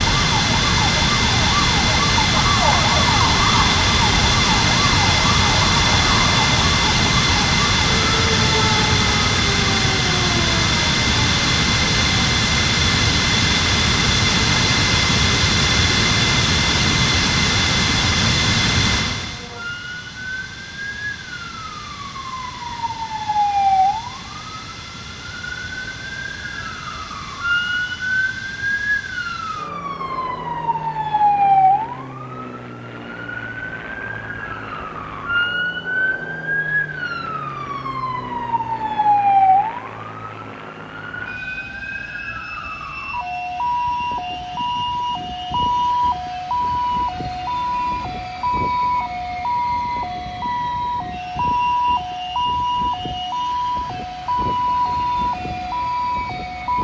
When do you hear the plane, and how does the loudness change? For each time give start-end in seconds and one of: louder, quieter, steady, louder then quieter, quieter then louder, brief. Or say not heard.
0.0-56.7 quieter.